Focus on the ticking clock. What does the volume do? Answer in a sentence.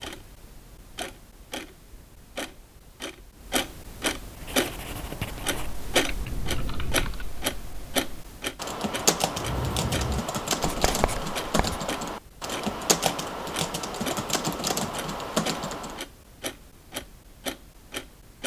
The volume of the ticking clock goes up, then down.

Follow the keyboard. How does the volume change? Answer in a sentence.
The loudness of the keyboard goes up.